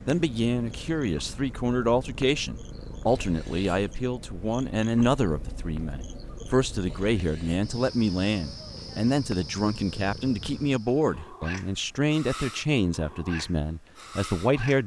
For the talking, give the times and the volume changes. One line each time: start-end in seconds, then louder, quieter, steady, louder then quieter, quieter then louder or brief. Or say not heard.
0.1-14.8 steady.